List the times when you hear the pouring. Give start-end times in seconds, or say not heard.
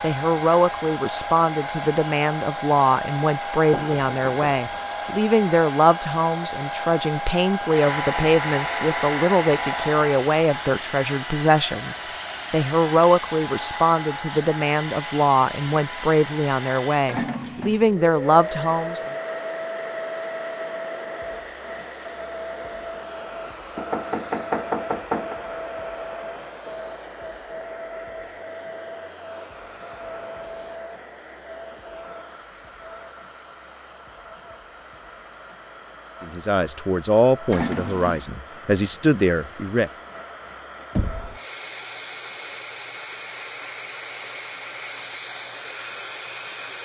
17.1-17.9, 37.5-38.3.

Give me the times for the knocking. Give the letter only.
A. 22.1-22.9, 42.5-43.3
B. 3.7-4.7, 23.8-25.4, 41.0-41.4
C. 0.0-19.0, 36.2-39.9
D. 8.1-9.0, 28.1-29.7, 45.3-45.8
B.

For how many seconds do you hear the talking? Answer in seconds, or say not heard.
23 s.